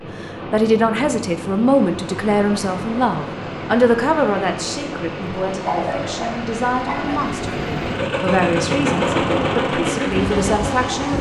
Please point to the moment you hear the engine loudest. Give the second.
9 s.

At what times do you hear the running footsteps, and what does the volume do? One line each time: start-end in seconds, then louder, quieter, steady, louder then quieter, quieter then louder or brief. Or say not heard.
not heard.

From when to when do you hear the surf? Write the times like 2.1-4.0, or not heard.
0.0-11.1.